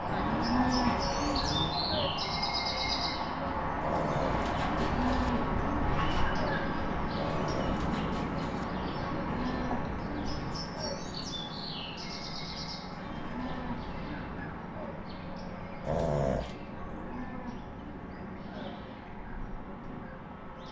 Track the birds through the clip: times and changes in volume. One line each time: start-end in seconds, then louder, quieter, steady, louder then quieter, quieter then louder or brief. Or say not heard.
0.0-20.6 quieter.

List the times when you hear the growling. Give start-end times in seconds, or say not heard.
3.8-5.3, 7.2-8.7, 15.8-16.6.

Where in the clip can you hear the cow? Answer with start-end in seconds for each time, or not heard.
0.1-2.1, 4.6-6.5, 8.9-10.9, 12.9-14.9, 16.6-18.7.